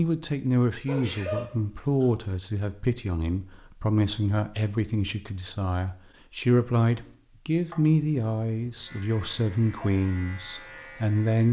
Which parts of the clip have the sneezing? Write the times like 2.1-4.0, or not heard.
0.8-2.1, 7.7-8.8.